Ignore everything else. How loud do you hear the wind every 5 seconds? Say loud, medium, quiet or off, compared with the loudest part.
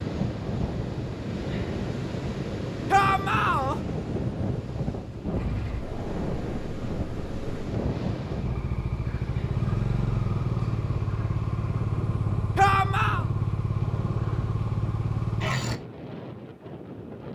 loud, loud, medium, medium.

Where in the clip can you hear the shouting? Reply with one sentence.
The shouting can be heard from 2.9 to 3.8 s and from 12.6 to 13.2 s.